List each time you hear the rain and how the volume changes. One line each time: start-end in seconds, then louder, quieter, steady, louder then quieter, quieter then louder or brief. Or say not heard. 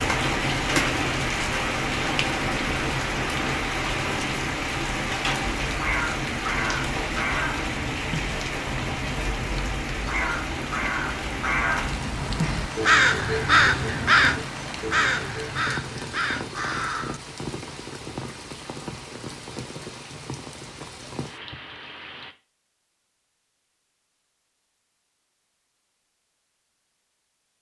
0.0-22.4 quieter.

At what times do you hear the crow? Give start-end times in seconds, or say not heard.
5.4-17.2.